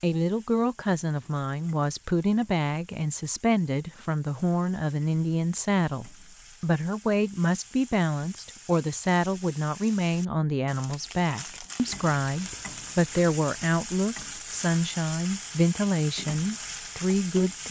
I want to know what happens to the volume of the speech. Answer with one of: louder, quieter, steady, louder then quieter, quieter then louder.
steady.